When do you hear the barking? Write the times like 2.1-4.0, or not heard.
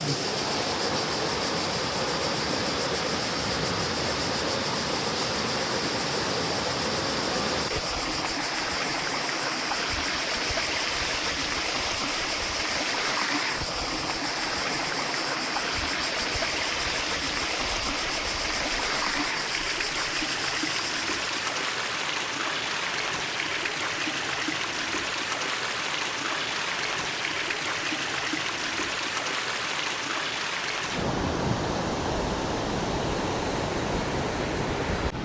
not heard.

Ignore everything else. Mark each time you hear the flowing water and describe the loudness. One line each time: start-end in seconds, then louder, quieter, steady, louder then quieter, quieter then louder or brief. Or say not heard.
0.0-35.2 steady.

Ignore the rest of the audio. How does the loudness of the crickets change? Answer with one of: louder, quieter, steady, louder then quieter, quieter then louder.
steady.